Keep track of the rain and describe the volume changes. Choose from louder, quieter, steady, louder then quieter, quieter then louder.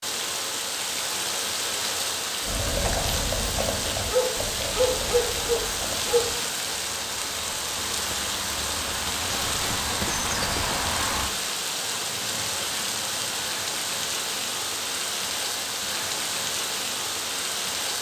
steady.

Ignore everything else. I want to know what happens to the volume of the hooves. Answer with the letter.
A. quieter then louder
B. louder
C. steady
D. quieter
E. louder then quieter
A.